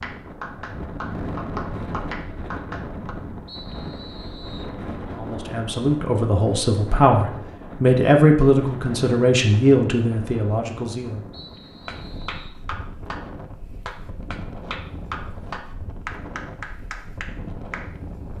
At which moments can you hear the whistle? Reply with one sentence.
You can hear the whistle from 3.5 to 4.8 s and from 11.3 to 12.6 s.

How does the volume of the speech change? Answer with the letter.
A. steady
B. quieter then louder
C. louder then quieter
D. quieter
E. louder
C.